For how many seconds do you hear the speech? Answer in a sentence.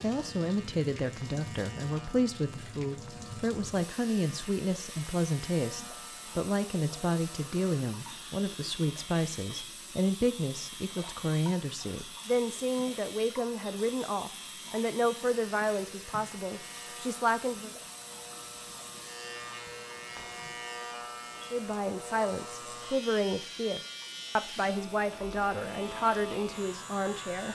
You can hear the speech for 24 seconds altogether.